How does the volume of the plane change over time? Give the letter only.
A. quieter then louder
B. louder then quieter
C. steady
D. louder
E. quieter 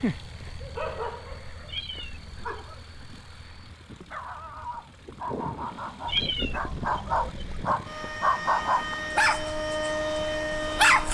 D.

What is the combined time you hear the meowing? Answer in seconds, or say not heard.
3 s.